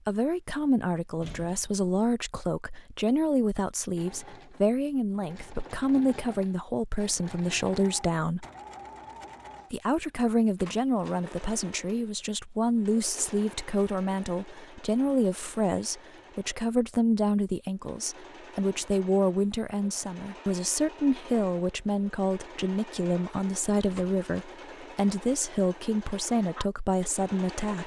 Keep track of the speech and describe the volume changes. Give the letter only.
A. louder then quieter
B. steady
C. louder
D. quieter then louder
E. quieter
B.